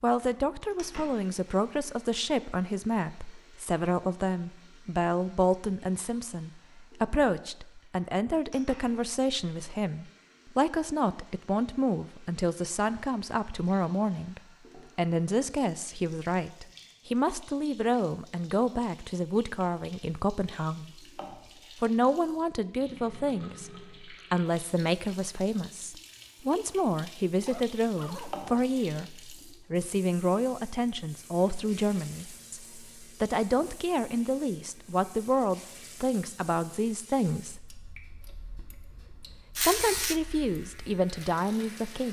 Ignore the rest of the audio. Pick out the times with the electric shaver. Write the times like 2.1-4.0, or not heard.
39.5-42.0.